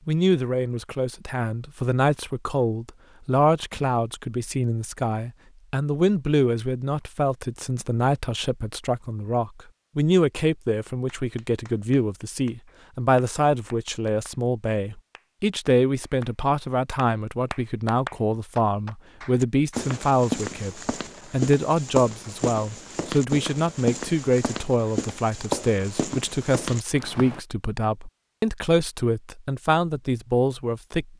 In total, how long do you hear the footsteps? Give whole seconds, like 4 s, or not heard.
8 s.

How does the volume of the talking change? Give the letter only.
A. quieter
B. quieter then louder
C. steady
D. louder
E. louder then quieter
C.